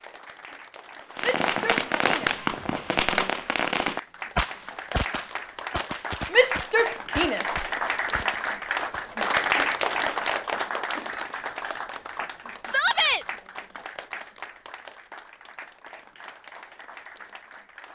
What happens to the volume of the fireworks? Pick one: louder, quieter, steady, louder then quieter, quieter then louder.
quieter.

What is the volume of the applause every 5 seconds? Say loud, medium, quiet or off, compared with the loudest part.
quiet, loud, medium, quiet.